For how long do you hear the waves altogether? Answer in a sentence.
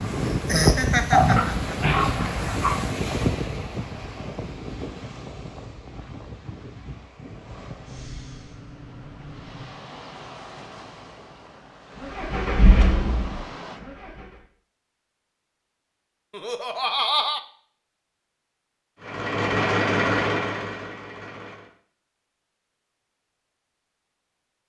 You can hear the waves for 14 seconds altogether.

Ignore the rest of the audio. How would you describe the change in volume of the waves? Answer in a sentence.
The loudness of the waves goes down.